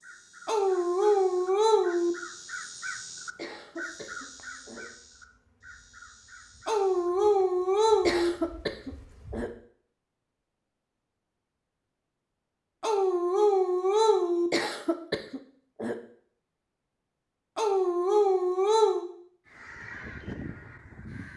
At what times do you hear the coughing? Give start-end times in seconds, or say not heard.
3.4-4.8, 8.1-9.5, 14.5-15.9.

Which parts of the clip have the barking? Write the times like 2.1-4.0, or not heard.
0.5-2.1, 6.7-8.3, 12.8-14.5, 17.6-19.1.